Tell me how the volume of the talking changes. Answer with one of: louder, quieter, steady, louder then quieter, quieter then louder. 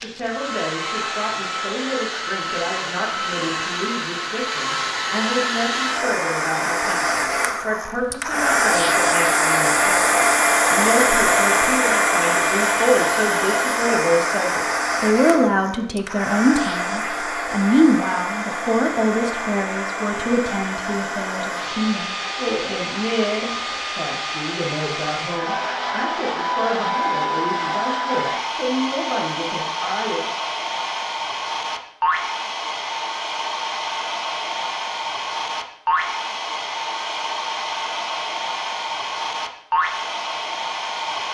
louder then quieter.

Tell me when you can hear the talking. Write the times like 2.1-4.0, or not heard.
0.0-30.2.